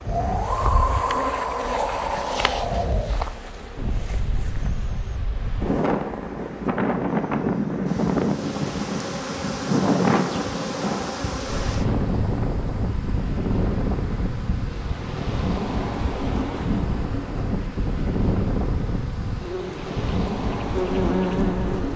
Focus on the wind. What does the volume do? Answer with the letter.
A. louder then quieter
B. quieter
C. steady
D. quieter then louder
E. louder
C.